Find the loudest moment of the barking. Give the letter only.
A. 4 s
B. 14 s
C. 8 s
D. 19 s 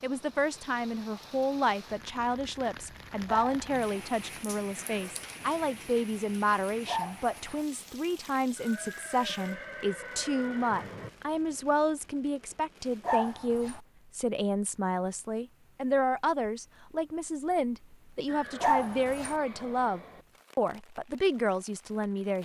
D.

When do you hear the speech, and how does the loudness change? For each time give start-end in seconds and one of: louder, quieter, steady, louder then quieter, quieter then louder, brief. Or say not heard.
0.0-22.4 steady.